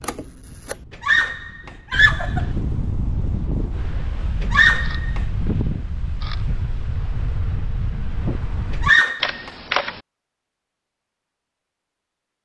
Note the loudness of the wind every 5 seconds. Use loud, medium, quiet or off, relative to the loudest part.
loud, loud, off.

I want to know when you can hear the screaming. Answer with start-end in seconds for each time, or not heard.
1.0-2.5, 4.4-5.2, 8.7-9.5.